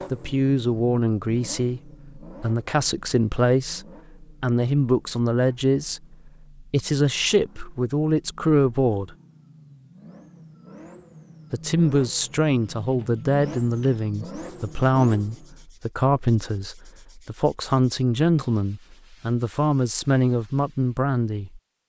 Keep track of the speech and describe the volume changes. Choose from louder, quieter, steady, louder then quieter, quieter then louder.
steady.